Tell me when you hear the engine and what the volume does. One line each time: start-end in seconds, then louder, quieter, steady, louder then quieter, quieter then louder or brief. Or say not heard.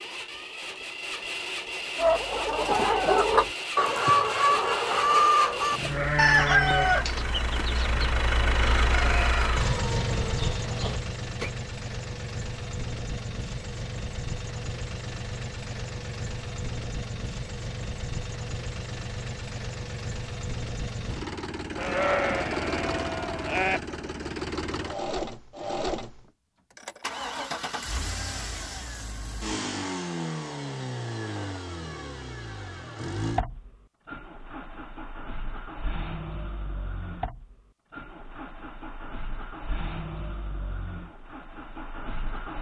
0.0-42.5 quieter.